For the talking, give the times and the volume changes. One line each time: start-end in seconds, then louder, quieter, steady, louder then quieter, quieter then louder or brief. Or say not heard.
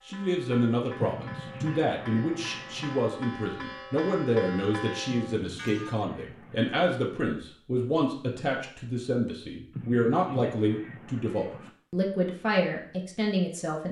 0.1-13.8 steady.